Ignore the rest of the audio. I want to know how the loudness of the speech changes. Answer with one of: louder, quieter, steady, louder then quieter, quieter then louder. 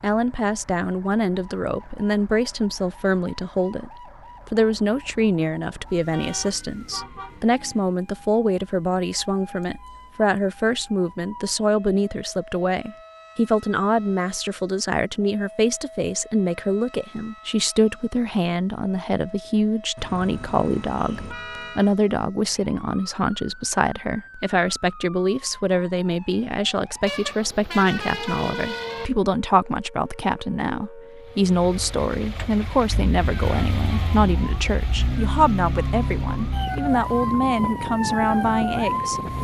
steady.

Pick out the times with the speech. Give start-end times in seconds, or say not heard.
0.0-3.9, 4.5-39.2.